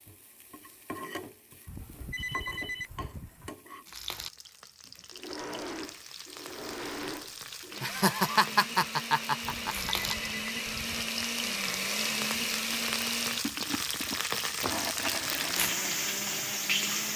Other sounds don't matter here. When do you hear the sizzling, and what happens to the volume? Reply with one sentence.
You can hear the sizzling from 0.0 to 17.1 s, getting louder.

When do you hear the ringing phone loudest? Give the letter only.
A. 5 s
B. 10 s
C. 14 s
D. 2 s
D.